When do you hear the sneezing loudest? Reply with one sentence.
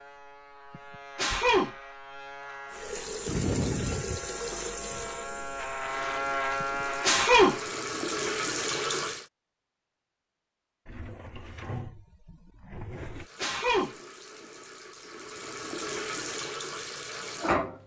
The volume of the sneezing peaks at 7 seconds.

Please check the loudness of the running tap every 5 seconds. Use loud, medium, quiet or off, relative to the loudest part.
loud, loud, quiet, loud.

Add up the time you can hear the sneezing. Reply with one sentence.
You can hear the sneezing for 3 seconds altogether.